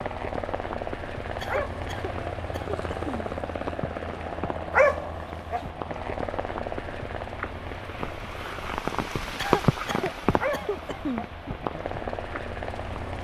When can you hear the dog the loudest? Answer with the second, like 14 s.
5 s.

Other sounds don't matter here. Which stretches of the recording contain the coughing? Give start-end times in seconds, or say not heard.
1.4-3.1, 9.3-11.2.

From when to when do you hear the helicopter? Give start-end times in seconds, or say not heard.
0.0-13.1.